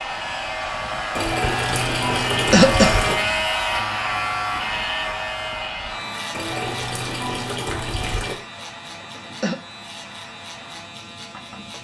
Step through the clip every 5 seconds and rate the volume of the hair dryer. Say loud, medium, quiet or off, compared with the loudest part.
loud, medium, quiet.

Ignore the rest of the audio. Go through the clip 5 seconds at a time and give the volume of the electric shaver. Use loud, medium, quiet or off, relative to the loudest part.
loud, medium, quiet.